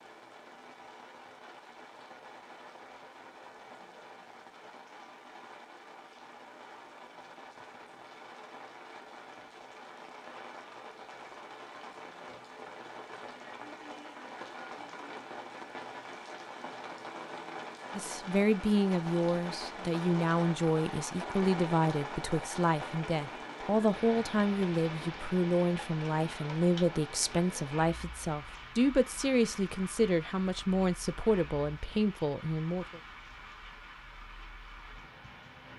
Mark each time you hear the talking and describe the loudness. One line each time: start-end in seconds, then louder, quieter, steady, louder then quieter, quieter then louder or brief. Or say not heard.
17.9-33.0 steady.